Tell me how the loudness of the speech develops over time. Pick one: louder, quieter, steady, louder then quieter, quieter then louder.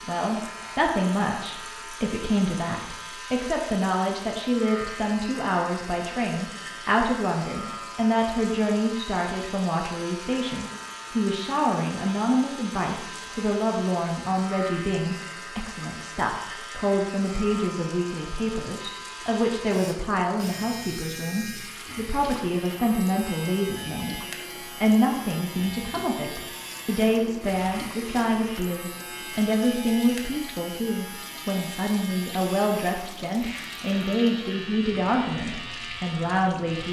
steady.